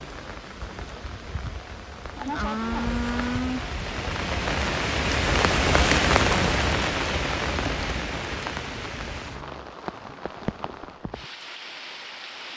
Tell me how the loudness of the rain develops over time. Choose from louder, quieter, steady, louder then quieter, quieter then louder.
louder then quieter.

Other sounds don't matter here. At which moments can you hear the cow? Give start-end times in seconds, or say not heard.
2.1-3.7.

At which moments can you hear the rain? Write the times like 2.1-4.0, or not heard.
0.0-12.5.